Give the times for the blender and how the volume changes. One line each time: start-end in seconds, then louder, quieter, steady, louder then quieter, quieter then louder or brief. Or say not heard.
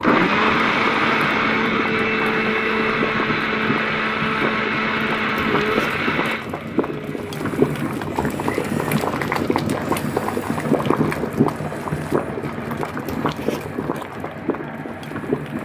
0.0-15.6 quieter.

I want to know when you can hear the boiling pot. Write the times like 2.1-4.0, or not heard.
0.0-15.6.